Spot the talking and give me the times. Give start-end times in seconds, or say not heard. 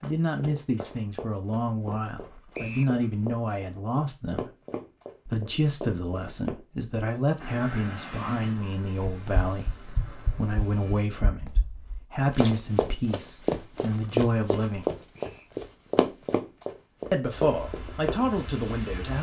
0.0-4.5, 5.2-14.9, 17.1-19.1.